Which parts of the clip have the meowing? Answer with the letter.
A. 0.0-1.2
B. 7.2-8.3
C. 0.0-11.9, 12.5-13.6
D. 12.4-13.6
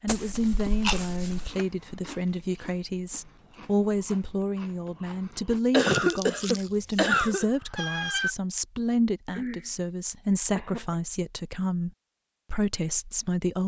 B.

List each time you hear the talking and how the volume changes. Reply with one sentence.
The talking can be heard from 0.0 to 11.9 s, at a steady volume; and briefly from 12.5 to 13.6 s.